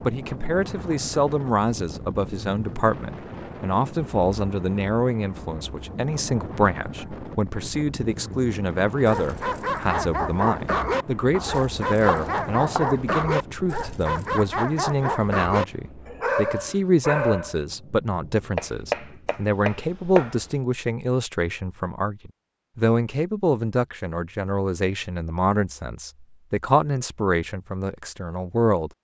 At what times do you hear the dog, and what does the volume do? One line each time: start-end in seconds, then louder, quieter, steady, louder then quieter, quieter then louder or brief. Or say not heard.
9.1-17.6 steady.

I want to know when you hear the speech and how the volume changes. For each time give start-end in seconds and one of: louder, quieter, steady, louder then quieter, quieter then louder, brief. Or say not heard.
0.1-28.9 steady.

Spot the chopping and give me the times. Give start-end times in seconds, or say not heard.
11.3-12.8, 18.6-20.4.